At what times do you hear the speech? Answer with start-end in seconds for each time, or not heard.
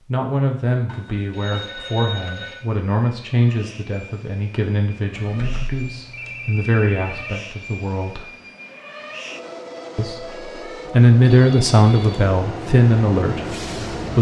0.1-8.3, 9.9-14.1.